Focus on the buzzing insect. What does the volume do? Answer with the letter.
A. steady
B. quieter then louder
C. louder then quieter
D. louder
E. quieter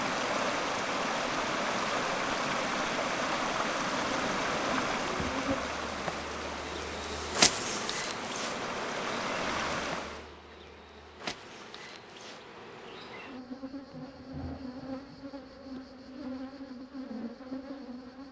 C.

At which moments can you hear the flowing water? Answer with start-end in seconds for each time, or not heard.
0.0-10.2.